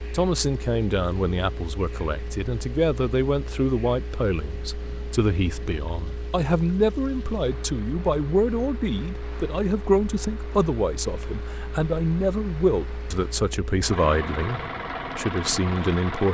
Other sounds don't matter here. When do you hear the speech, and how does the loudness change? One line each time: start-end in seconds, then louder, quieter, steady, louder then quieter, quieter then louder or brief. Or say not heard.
0.1-16.2 steady.